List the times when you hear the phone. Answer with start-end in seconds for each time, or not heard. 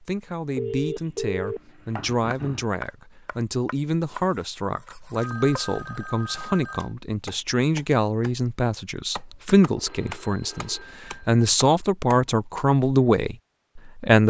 0.6-2.6, 5.2-7.0, 9.8-11.4.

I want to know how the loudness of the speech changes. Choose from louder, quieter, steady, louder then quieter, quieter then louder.
louder.